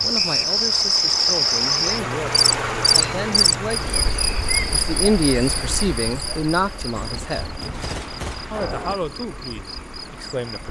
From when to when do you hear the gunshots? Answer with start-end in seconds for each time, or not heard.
7.0-8.9.